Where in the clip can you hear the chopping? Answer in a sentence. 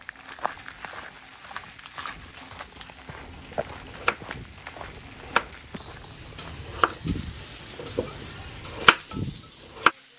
The chopping can be heard from 3.2 to 5.5 s and from 6.1 to 9.9 s.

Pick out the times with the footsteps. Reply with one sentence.
You can hear the footsteps from 0.0 to 6.7 s.